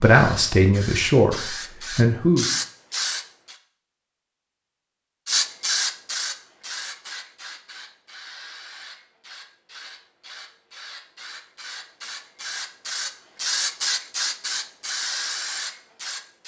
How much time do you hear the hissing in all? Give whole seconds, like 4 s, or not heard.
15 s.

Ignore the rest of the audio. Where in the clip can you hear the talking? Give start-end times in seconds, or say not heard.
0.0-2.5.